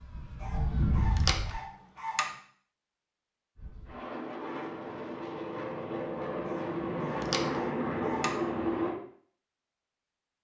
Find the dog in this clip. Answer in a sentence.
You can hear the dog from 0.4 to 2.3 s and from 6.5 to 8.3 s.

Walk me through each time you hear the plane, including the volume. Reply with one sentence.
You can hear the plane briefly from 0.0 to 1.6 s; and from 3.5 to 9.0 s, getting louder.